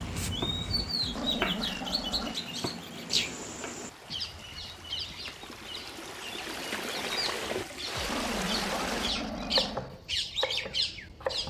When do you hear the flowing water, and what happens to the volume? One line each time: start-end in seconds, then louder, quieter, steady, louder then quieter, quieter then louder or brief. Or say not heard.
0.0-9.2 louder.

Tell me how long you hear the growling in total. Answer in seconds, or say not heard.
3 s.